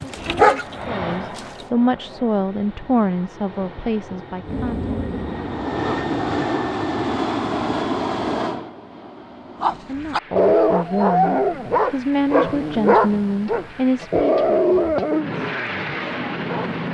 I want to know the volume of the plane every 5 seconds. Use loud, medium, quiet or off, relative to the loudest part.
medium, loud, quiet, loud.